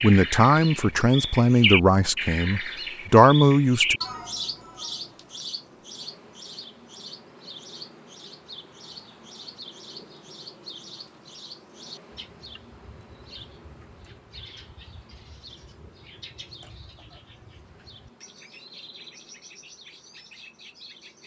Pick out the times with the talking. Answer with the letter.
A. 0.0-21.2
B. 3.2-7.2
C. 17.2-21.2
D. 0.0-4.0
D.